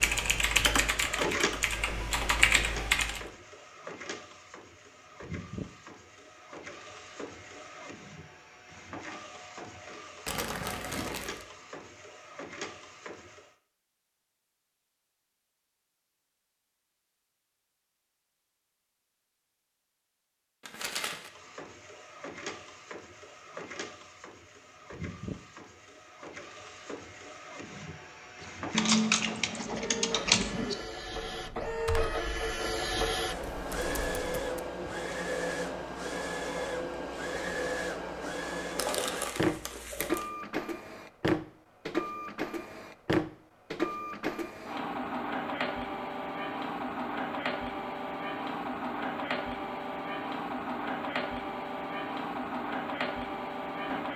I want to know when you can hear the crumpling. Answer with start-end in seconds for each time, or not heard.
10.2-11.4, 20.6-21.3, 38.8-40.3.